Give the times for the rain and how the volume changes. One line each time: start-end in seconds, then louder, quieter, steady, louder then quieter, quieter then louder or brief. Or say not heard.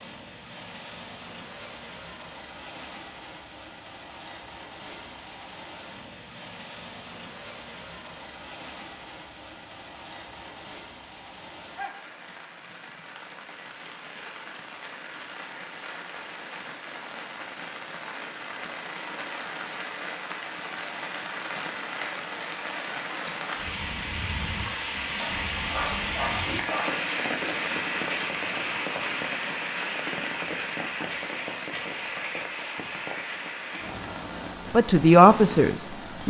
0.0-36.2 louder.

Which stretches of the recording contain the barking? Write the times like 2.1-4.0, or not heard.
25.2-27.1.